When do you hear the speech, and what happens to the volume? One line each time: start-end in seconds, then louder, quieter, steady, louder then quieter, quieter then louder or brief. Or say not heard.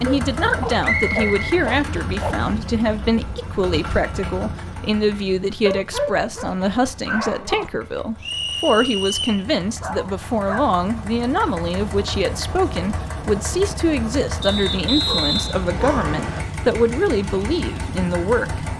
0.0-18.7 steady.